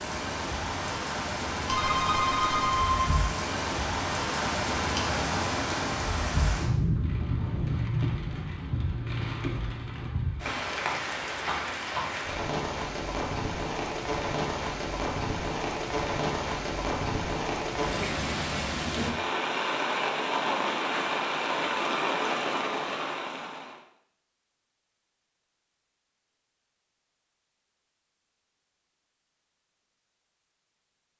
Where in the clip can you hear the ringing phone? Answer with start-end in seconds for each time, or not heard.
1.6-3.2.